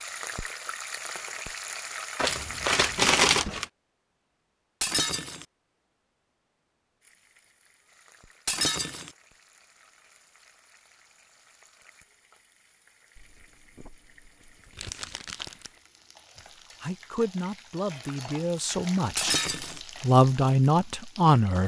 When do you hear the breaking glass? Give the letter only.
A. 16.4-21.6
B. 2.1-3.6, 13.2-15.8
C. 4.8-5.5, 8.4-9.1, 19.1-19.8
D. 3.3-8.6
C.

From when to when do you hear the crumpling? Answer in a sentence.
You can hear the crumpling from 2.1 to 3.6 s and from 13.2 to 15.8 s.